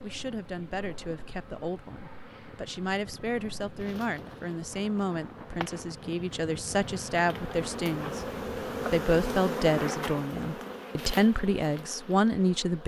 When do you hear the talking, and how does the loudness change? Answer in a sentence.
The talking can be heard from 0.0 to 12.8 s, getting louder.